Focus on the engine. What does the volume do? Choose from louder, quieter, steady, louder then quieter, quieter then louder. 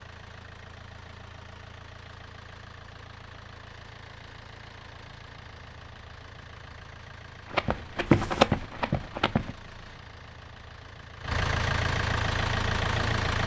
louder.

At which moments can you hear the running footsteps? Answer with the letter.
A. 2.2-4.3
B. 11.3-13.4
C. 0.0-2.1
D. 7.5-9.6
D.